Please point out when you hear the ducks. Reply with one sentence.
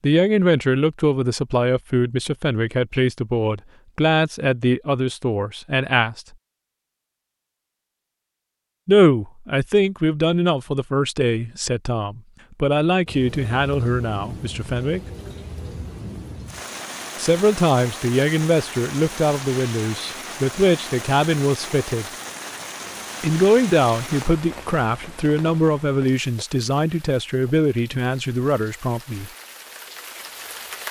The ducks can't be heard in this clip.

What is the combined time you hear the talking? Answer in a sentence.
You can hear the talking for 23 seconds altogether.